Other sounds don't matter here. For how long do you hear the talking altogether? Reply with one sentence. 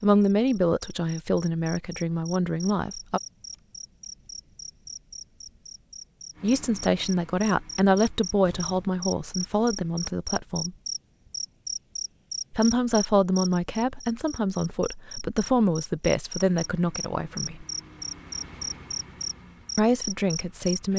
The talking can be heard for 14 seconds in total.